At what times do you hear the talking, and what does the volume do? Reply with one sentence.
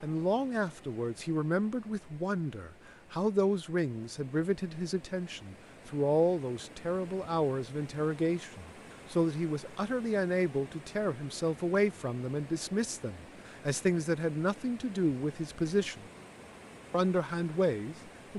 You can hear the talking from 0.0 to 16.1 s, at a steady volume; and briefly from 16.9 to 18.3 s.